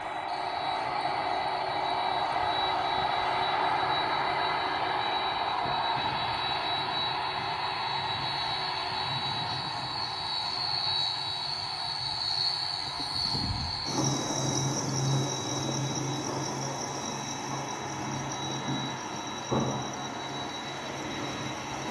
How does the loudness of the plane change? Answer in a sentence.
The volume of the plane goes down.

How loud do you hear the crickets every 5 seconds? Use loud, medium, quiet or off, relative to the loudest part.
quiet, medium, loud, loud, medium.